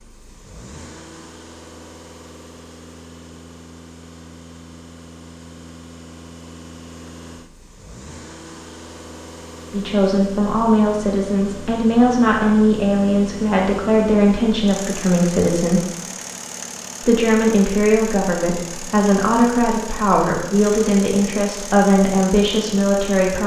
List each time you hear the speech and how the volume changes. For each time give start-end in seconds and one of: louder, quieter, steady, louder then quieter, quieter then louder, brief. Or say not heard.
9.7-15.8 steady
17.0-23.4 steady.